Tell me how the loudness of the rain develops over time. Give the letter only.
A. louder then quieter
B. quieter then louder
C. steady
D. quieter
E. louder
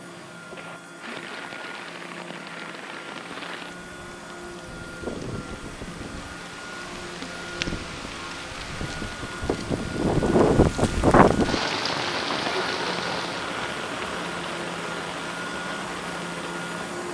A.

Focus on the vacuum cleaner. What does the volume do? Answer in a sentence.
The volume of the vacuum cleaner goes up.